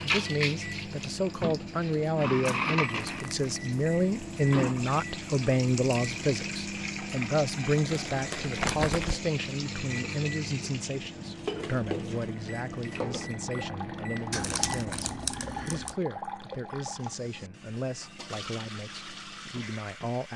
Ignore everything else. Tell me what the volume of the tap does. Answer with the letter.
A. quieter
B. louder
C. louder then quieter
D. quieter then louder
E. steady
A.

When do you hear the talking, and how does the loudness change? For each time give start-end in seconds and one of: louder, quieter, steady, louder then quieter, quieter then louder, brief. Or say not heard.
0.0-20.3 quieter.